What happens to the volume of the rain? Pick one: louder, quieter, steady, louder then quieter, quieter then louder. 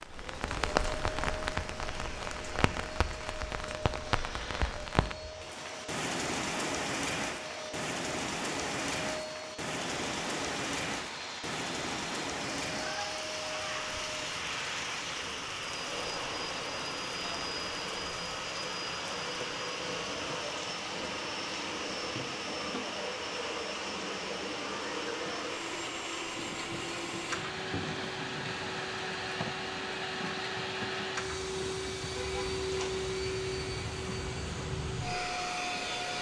quieter.